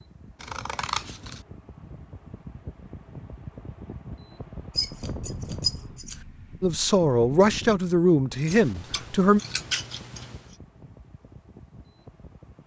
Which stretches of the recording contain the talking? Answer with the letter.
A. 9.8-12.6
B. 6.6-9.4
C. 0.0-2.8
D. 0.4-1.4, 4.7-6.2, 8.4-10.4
B.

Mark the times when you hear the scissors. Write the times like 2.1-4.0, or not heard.
0.4-1.4, 4.7-6.2, 8.4-10.4.